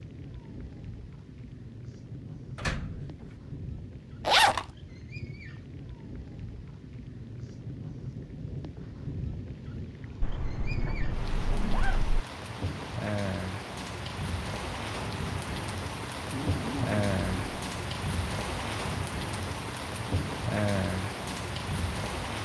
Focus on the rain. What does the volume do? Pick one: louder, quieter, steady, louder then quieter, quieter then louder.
louder.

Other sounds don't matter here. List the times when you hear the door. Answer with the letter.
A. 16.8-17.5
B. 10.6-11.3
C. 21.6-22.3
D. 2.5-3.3
D.